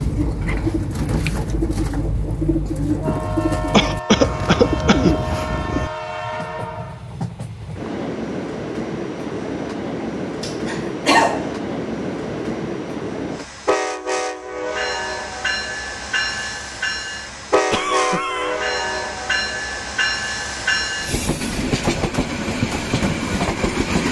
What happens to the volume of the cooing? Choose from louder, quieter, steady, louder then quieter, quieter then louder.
steady.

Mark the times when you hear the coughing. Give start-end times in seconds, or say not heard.
3.7-5.2, 10.0-11.5, 17.7-18.6.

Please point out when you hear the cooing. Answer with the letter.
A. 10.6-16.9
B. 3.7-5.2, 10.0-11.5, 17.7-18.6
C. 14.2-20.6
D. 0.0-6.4
D.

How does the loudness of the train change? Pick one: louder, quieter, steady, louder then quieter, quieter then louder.
louder.